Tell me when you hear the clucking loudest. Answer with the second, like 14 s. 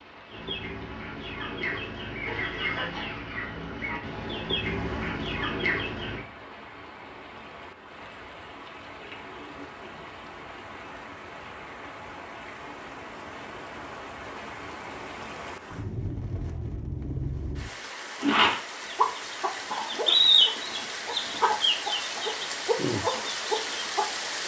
20 s.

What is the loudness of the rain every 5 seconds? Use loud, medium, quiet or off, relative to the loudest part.
quiet, medium, medium, loud, loud.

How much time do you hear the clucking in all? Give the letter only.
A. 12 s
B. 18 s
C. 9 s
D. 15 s
A.